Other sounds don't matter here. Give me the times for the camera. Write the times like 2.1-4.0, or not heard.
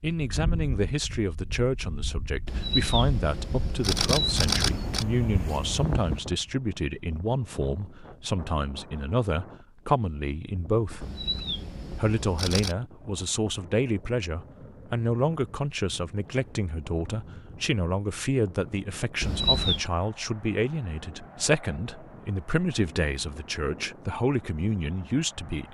2.5-5.0, 11.0-12.8, 19.2-19.9.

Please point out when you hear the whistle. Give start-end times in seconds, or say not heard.
not heard.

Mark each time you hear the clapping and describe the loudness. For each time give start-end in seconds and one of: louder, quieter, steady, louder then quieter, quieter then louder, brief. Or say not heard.
not heard.